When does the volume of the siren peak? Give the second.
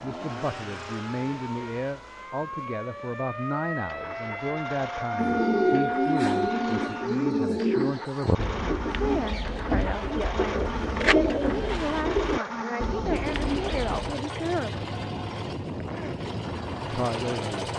6 s.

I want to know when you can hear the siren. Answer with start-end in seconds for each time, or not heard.
0.0-7.1.